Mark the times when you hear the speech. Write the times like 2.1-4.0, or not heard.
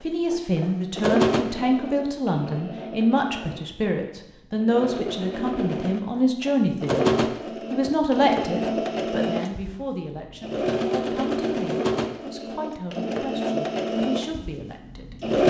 0.0-15.3.